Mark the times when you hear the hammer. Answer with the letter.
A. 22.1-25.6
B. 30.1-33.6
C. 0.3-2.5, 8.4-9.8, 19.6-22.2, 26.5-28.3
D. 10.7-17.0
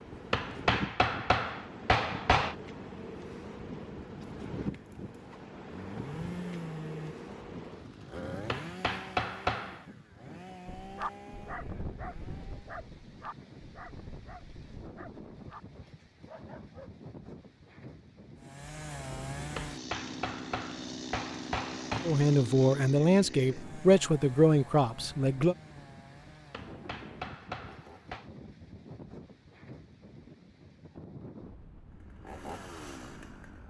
C.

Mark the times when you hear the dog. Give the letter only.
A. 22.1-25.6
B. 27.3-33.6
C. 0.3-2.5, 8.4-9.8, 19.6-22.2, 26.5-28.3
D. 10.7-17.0
D.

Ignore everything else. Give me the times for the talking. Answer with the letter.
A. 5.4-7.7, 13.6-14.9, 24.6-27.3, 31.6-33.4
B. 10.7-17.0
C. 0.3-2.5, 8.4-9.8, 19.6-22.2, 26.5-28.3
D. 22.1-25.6
D.